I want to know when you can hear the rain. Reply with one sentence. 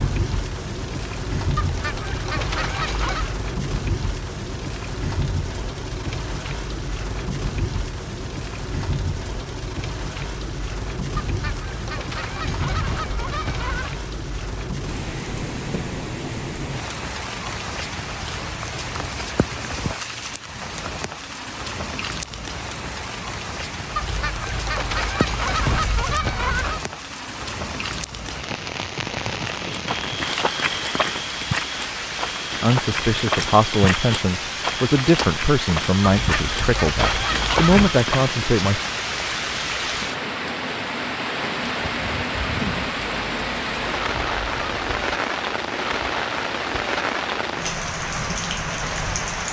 The rain can be heard from 0.0 to 49.4 s.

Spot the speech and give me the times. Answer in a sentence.
The speech can be heard from 32.6 to 38.8 s.